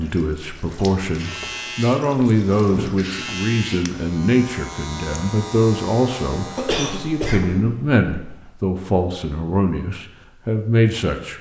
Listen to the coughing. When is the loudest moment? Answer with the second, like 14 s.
7 s.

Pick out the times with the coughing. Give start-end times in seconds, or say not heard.
2.2-3.3, 6.5-8.5.